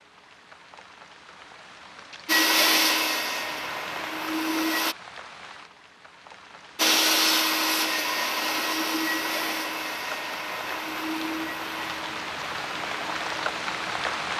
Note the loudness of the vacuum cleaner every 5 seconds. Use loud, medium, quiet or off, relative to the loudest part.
loud, loud, medium.